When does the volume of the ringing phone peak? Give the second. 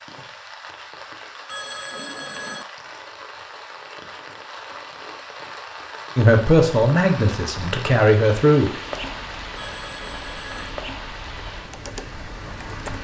2 s.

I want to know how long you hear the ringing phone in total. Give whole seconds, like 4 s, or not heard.
2 s.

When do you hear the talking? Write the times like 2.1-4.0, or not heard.
6.2-8.7.